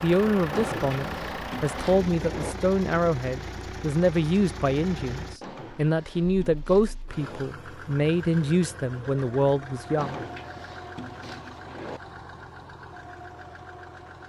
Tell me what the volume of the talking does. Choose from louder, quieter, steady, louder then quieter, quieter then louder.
steady.